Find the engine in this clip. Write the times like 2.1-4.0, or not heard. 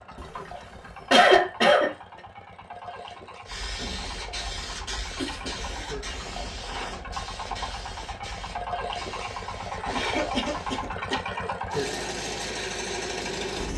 0.0-13.7.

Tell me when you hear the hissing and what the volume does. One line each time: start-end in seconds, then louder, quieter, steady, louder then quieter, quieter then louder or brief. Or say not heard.
3.5-10.9 quieter.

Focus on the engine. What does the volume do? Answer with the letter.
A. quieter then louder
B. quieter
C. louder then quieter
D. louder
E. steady
D.